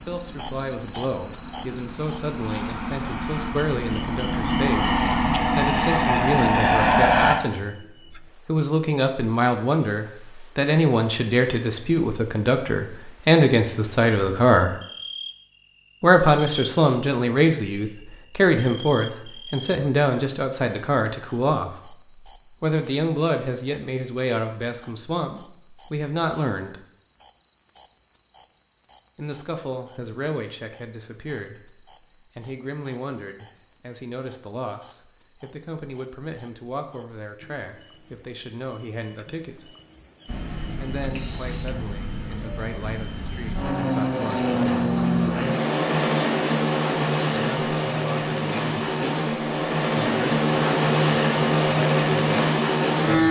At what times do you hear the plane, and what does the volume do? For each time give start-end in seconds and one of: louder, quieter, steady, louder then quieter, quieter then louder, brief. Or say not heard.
0.0-7.3 louder
40.2-53.2 louder.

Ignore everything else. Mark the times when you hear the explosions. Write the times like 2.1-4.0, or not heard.
not heard.